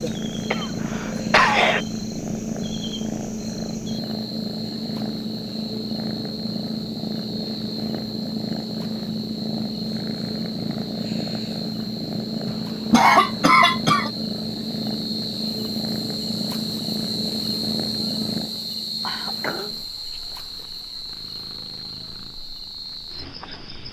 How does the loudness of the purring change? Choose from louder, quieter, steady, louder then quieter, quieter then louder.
quieter.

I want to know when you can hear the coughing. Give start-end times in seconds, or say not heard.
0.5-1.8, 12.4-14.1, 19.1-19.7.